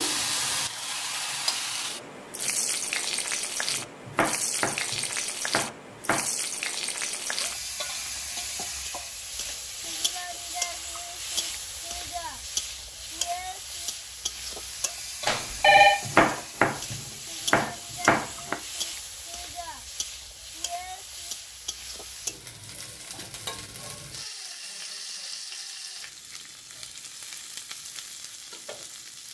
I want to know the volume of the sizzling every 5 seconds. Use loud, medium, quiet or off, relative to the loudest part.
loud, loud, loud, medium, medium, medium.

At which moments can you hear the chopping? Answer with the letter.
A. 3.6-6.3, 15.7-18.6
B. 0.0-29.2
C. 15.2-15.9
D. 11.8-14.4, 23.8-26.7
A.